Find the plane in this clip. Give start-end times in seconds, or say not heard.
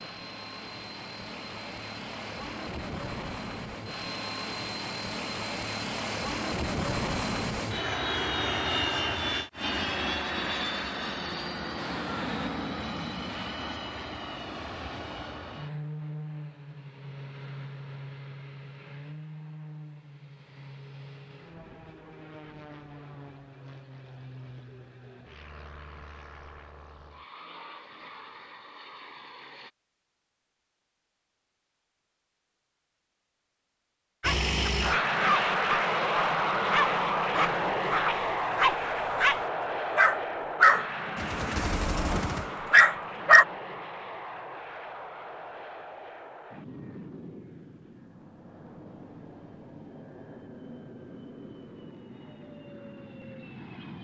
0.0-29.7, 34.2-53.9.